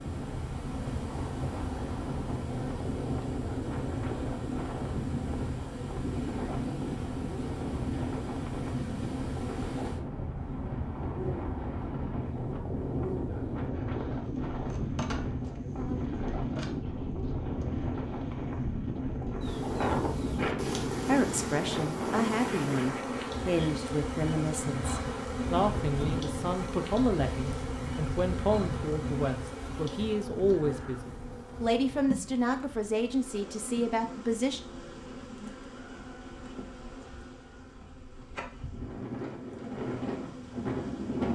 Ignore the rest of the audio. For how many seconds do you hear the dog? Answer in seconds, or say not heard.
not heard.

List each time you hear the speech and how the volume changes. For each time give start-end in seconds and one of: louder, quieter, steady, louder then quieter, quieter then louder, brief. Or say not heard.
21.1-34.6 steady.